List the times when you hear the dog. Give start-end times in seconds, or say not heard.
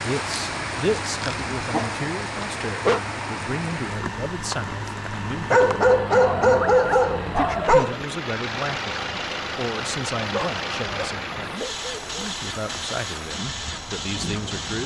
1.2-3.0, 5.5-8.0, 10.3-12.1.